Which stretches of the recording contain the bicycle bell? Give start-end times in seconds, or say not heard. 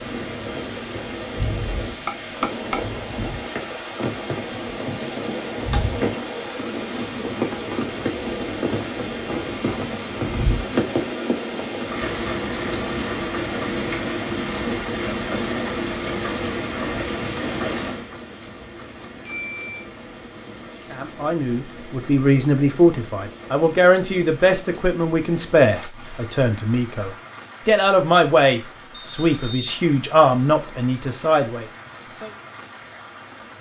2.0-3.0, 19.2-19.9, 29.0-29.8.